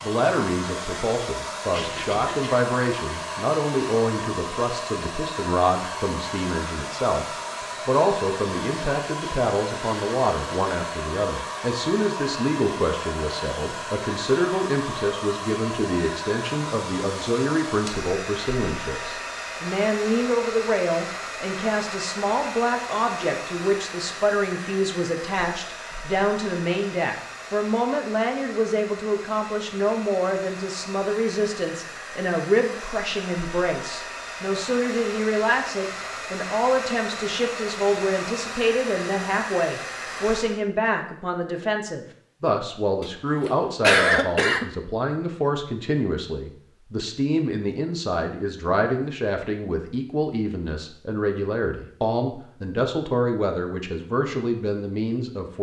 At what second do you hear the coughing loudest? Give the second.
44 s.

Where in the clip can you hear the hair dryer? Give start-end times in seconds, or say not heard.
0.0-40.6.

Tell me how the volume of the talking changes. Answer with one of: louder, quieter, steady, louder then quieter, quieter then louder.
steady.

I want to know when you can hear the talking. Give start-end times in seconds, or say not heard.
0.0-7.2, 7.8-55.5.